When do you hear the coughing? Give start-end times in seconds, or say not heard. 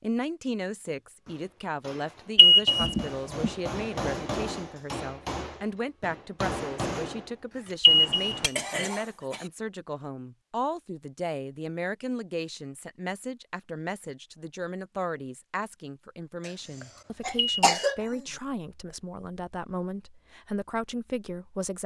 2.8-3.5, 8.6-9.5, 16.4-18.2.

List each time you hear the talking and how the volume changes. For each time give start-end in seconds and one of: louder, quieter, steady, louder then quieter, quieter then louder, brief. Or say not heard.
0.0-21.8 steady.